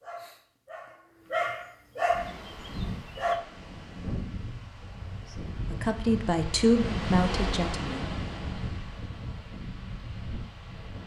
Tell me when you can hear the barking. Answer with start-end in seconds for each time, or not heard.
0.0-3.4.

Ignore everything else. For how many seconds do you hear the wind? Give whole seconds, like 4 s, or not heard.
9 s.